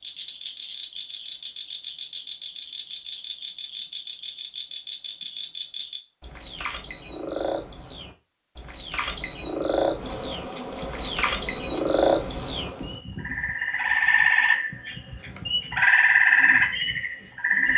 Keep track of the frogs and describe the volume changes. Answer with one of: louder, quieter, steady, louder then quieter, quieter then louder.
louder.